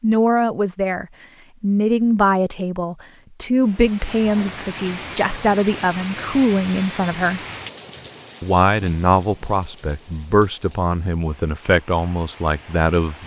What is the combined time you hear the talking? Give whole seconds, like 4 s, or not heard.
12 s.